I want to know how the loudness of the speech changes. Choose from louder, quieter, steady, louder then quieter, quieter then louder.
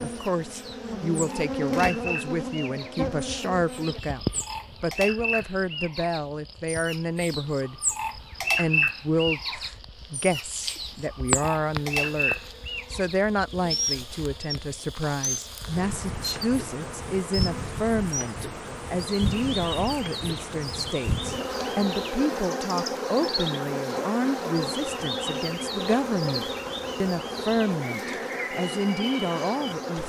steady.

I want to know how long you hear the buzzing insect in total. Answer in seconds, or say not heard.
30 s.